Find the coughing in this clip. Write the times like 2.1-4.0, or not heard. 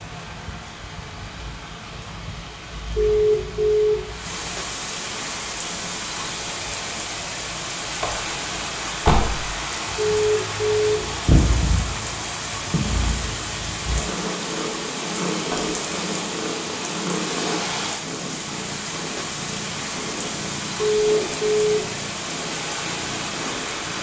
not heard.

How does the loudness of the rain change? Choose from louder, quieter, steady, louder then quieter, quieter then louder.
louder.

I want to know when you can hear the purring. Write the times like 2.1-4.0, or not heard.
0.0-23.9.